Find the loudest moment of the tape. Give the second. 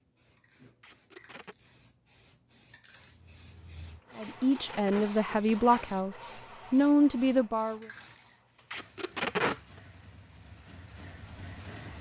9 s.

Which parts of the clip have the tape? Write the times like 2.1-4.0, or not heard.
0.8-1.6, 4.2-5.9, 8.7-9.8.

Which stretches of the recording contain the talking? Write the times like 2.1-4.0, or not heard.
4.2-7.8.